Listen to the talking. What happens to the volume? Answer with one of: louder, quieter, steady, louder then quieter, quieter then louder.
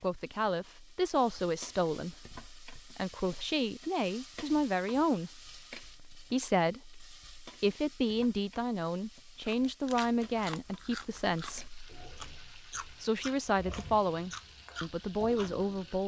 steady.